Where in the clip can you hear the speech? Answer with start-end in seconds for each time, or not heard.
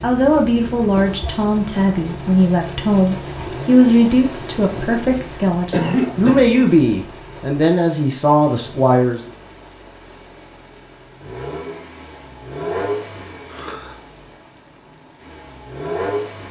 0.0-9.3.